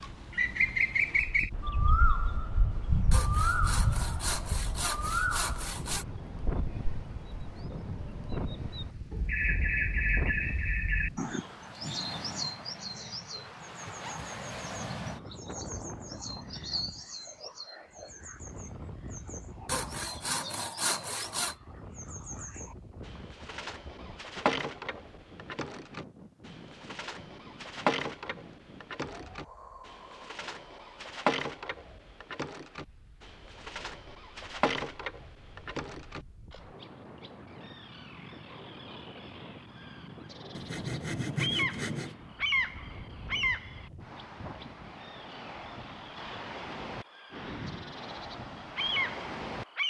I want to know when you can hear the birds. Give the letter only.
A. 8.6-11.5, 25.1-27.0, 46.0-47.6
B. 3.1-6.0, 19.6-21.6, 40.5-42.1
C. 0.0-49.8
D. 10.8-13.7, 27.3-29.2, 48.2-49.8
C.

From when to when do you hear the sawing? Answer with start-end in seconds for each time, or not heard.
3.1-6.0, 19.6-21.6, 40.5-42.1.